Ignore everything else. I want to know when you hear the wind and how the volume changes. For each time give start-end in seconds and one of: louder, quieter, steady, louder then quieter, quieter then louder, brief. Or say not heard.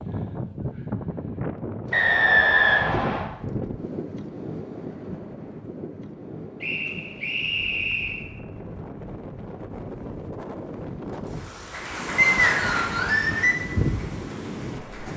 0.0-15.1 quieter then louder.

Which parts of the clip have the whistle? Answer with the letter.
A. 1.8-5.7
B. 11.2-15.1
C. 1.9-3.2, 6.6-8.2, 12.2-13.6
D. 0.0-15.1
C.